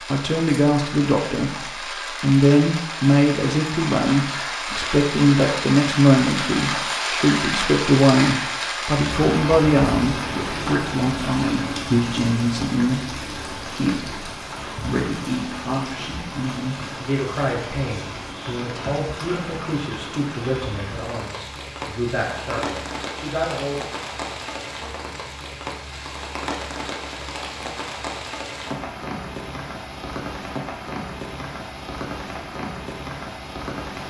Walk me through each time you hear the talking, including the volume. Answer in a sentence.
The talking can be heard from 0.1 to 23.8 s, getting quieter.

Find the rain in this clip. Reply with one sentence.
You can hear the rain from 0.0 to 34.0 s.